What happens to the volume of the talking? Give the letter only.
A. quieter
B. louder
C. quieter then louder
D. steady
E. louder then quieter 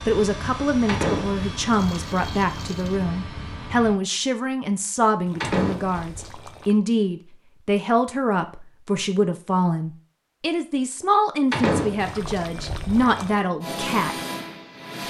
D.